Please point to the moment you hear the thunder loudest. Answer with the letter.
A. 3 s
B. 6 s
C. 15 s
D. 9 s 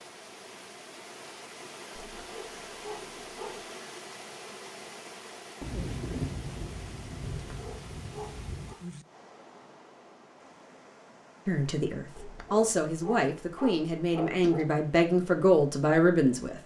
B.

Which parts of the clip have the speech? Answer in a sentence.
The speech can be heard from 11.4 to 16.6 s.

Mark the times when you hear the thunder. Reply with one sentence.
You can hear the thunder from 5.6 to 9.1 s.